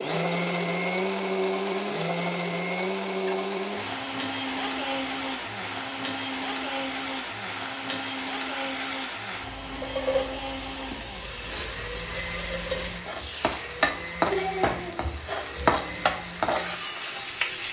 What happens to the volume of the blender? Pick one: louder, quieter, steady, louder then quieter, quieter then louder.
quieter.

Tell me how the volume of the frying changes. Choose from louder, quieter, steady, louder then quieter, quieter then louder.
louder.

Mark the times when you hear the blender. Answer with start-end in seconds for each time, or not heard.
0.0-17.6.